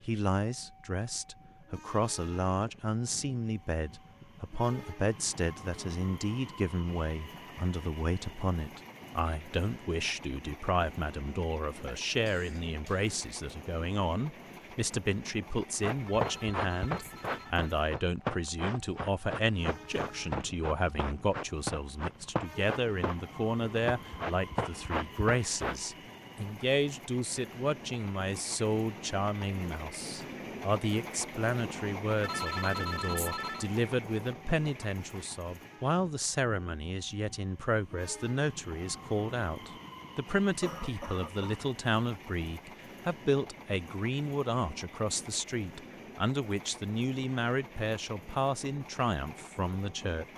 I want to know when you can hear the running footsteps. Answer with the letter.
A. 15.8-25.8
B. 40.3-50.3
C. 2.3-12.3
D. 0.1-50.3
A.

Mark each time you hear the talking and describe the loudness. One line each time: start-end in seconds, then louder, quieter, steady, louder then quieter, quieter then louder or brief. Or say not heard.
0.1-50.3 steady.